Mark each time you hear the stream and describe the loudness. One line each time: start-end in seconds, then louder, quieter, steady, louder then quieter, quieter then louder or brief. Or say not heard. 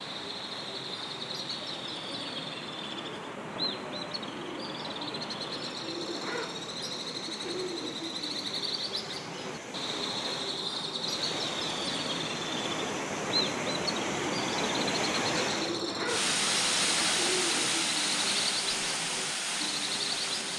0.0-20.5 louder.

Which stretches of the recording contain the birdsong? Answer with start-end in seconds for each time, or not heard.
0.0-20.5.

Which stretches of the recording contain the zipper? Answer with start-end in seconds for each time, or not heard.
not heard.